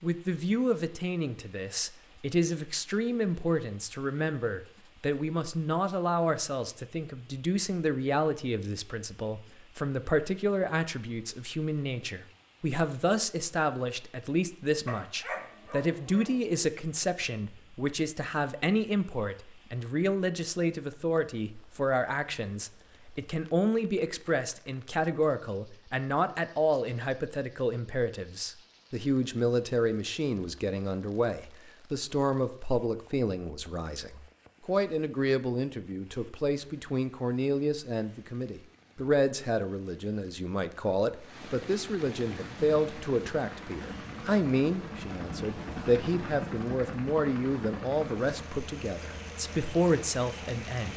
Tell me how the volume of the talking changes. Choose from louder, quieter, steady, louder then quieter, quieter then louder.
steady.